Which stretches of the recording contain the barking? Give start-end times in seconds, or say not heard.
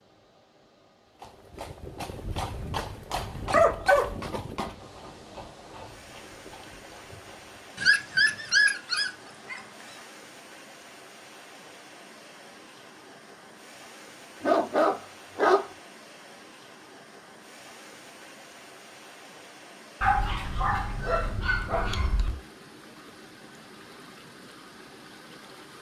2.2-4.2, 7.8-9.6, 14.4-15.7, 20.0-22.4.